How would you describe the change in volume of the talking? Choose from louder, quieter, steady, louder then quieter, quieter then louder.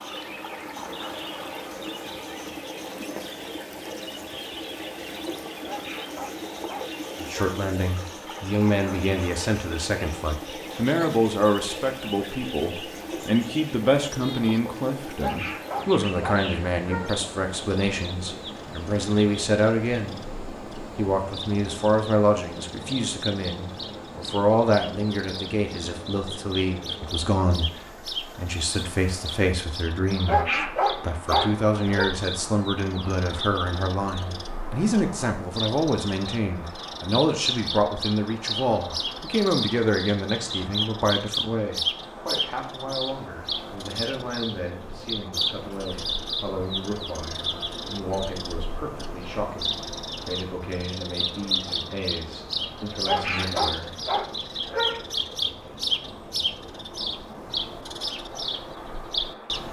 quieter.